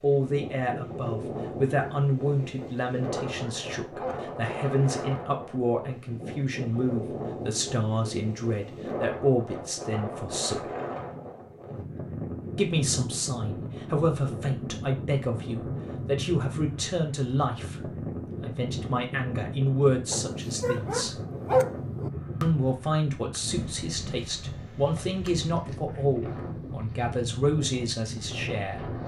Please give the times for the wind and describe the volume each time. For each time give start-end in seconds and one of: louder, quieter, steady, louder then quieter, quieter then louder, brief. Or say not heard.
0.0-29.0 steady.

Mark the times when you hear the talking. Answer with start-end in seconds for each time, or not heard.
0.0-10.7, 12.6-21.2, 22.4-29.0.